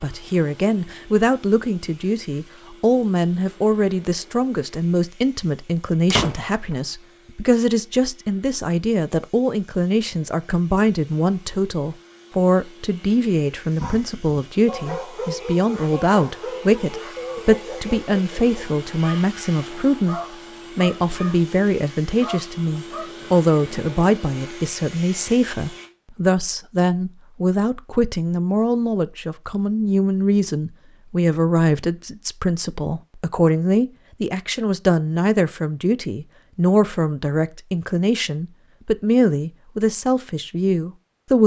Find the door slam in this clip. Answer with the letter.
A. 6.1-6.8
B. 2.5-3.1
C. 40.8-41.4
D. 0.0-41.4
A.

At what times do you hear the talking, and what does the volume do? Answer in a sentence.
The talking can be heard from 0.0 to 41.4 s, at a steady volume.